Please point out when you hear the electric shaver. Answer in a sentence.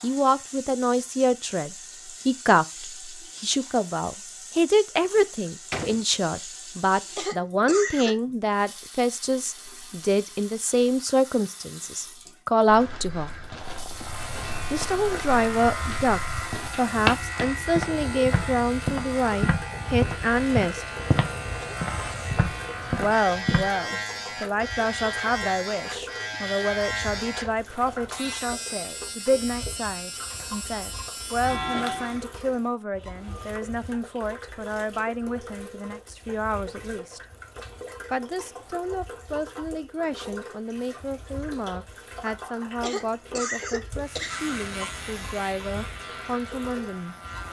The electric shaver can be heard from 13.9 to 32.3 s and from 43.9 to 47.4 s.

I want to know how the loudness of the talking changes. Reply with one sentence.
The volume of the talking goes down.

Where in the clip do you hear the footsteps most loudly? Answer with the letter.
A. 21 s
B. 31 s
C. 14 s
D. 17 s
D.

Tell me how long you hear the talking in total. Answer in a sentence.
The talking can be heard for 43 seconds in total.